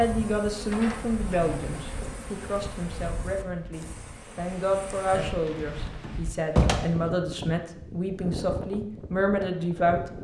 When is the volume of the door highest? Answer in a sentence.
The loudest moment of the door is at 7 seconds.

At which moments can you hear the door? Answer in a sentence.
The door can be heard from 0.7 to 1.6 s and from 5.5 to 7.0 s.